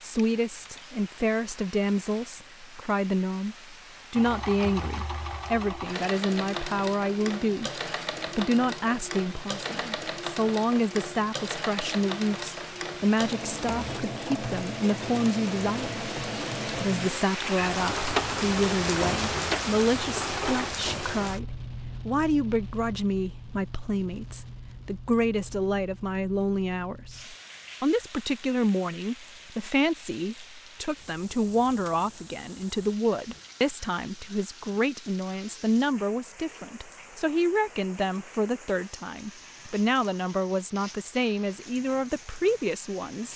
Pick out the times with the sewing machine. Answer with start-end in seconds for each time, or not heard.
4.2-21.2.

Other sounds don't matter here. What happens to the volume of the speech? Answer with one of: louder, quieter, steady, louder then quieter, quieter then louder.
steady.